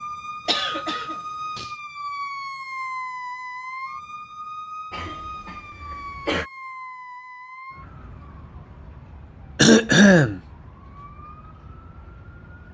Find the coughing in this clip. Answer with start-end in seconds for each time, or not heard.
0.5-1.7, 4.9-6.5, 9.6-10.4.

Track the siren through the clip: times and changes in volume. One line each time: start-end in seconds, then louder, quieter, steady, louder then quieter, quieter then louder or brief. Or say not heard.
0.0-12.7 quieter.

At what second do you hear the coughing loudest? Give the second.
10 s.